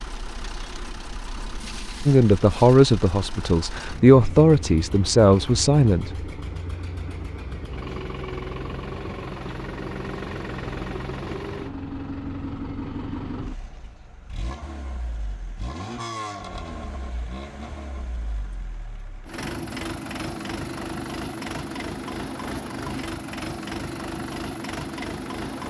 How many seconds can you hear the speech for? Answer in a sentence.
The speech can be heard for 4 seconds in total.